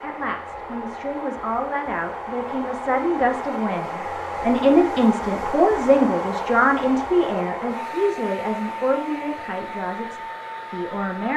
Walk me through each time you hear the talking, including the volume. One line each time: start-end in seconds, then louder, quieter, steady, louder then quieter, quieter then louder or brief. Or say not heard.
0.0-11.3 louder then quieter.